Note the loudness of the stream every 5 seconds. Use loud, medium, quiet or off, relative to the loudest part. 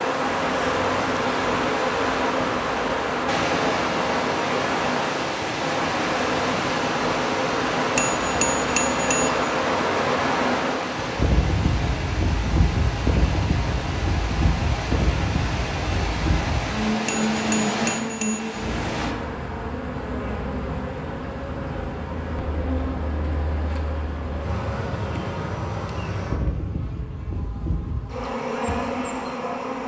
loud, loud, loud, loud, off, off.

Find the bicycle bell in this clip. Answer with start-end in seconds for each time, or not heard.
8.0-9.4, 17.1-18.5.